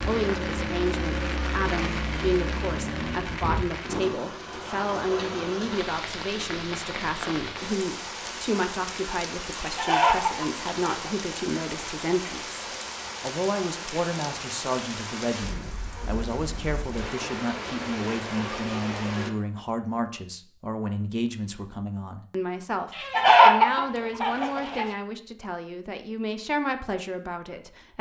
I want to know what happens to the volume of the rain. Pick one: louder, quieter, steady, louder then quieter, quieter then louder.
steady.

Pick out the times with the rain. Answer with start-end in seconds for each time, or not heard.
0.0-19.3.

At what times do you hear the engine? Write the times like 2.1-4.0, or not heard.
0.0-3.5.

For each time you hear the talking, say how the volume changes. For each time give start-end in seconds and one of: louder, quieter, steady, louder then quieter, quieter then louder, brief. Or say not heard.
0.1-27.9 steady.